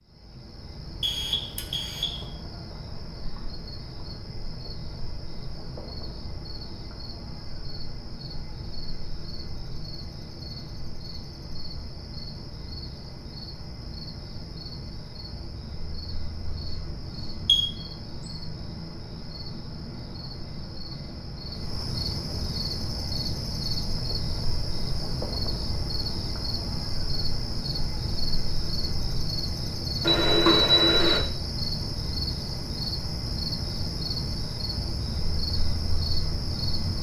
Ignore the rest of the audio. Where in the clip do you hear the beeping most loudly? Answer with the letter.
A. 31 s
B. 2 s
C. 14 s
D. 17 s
A.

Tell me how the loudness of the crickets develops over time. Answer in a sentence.
The volume of the crickets goes up.